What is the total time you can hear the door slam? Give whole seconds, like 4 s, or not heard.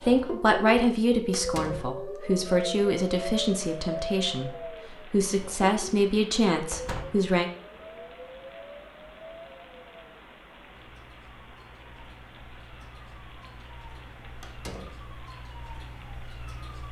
2 s.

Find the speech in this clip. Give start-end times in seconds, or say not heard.
0.1-4.5, 5.1-7.5.